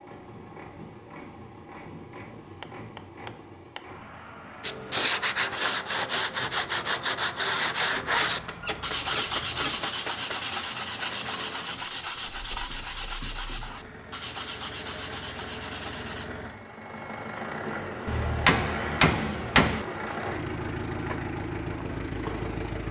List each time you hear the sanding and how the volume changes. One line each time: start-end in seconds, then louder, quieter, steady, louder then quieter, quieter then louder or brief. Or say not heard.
4.6-16.2 quieter.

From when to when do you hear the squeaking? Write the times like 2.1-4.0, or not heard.
8.0-9.8.